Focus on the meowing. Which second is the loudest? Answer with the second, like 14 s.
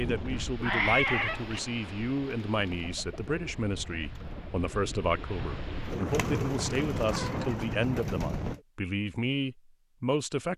1 s.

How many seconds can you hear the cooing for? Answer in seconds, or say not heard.
6 s.